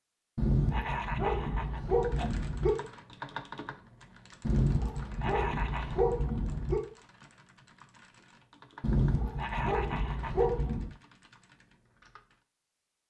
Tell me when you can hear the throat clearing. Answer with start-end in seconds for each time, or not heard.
0.7-2.3, 5.2-6.0, 9.3-10.5.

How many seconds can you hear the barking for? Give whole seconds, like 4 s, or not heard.
7 s.